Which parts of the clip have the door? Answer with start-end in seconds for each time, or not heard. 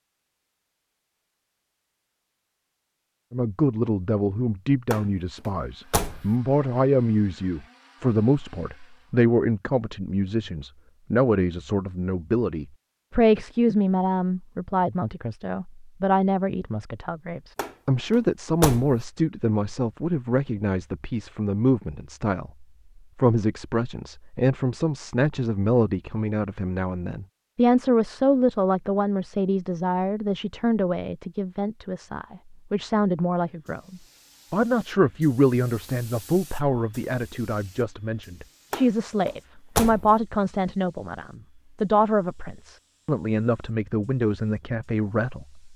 4.9-6.3, 17.6-19.0, 38.7-40.1.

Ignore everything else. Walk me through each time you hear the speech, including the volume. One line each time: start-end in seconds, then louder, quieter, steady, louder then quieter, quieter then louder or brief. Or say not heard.
3.3-45.7 steady.